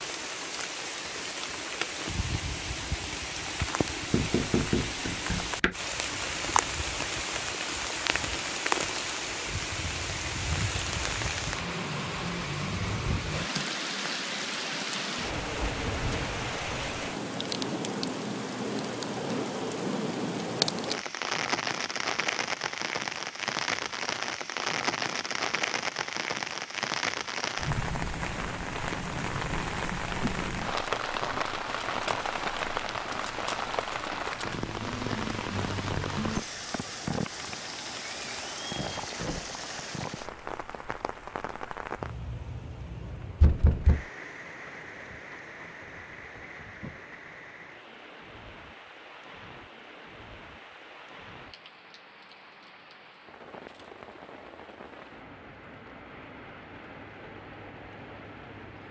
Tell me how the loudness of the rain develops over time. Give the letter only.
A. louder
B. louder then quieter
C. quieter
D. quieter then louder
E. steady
C.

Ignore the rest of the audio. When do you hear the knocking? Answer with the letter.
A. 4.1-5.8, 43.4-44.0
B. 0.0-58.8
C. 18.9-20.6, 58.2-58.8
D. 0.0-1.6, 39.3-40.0
A.